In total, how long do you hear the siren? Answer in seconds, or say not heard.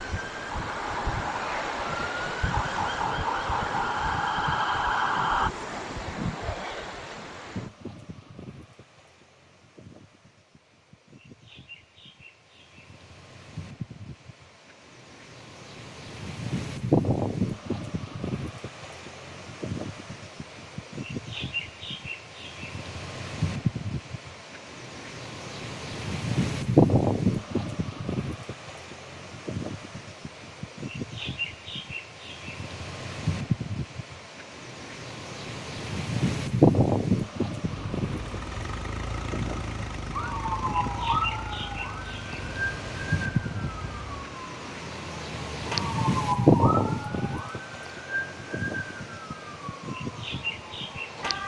17 s.